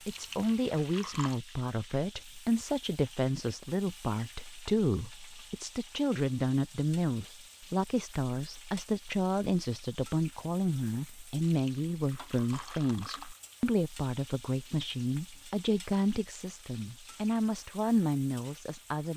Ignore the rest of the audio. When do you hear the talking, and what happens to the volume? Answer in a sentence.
The talking can be heard from 0.1 to 19.1 s, at a steady volume.